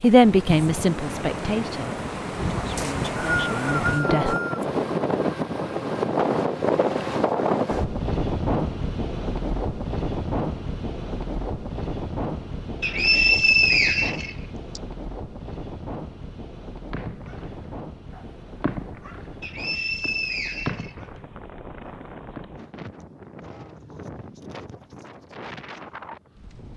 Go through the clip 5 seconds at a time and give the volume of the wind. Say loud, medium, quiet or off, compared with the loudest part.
loud, loud, medium, quiet, quiet, quiet.